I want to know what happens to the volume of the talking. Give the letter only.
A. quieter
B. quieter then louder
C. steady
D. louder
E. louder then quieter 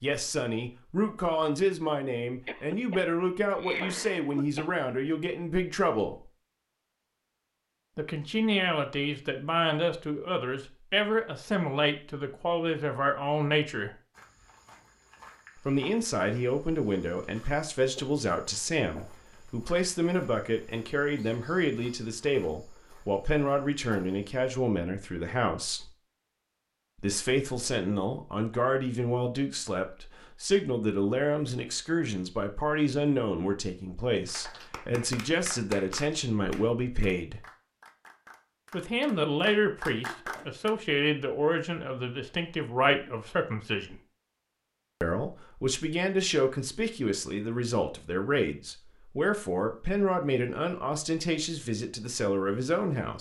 C.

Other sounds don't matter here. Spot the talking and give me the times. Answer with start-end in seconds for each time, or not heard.
0.0-6.3, 8.0-13.9, 15.7-25.9, 27.0-37.5, 38.7-44.0, 45.0-53.1.